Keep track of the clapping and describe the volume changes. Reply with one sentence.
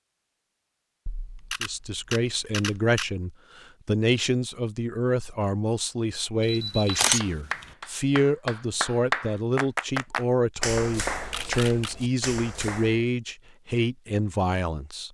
The loudness of the clapping goes up, then down.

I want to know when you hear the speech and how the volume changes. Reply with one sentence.
The speech can be heard from 1.6 to 15.0 s, at a steady volume.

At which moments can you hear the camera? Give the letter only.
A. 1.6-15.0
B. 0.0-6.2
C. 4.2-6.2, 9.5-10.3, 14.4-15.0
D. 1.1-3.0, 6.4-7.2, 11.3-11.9
D.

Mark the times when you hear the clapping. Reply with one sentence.
You can hear the clapping from 6.8 to 13.1 s.